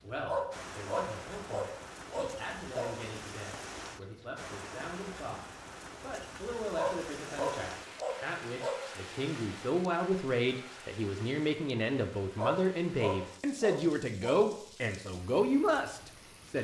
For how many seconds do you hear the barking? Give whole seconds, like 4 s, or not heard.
7 s.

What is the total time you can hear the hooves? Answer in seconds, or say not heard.
not heard.